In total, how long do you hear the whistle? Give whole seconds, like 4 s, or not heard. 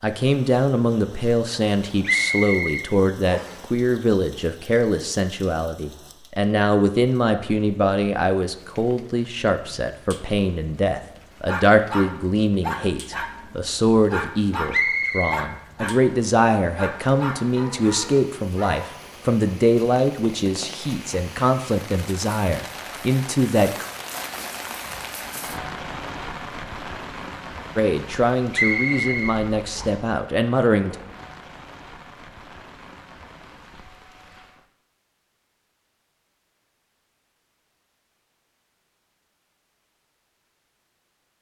4 s.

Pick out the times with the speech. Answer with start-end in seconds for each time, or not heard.
0.0-23.9, 27.8-30.9.